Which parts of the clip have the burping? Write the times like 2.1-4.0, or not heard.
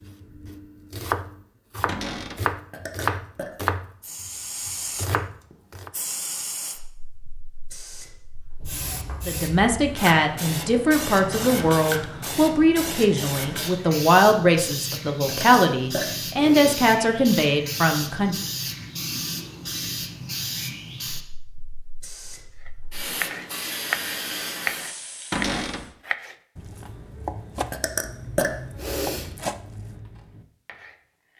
2.7-3.5, 15.2-16.9, 27.7-29.3.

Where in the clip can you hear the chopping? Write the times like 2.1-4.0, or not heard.
0.0-5.9, 22.6-31.3.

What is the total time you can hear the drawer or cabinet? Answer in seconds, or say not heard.
2 s.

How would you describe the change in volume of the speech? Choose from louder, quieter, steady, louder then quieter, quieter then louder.
steady.